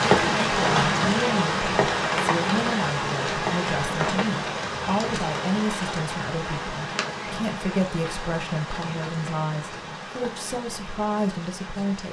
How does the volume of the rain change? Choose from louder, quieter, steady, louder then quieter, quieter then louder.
quieter.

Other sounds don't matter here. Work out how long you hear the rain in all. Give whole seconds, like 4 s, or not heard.
12 s.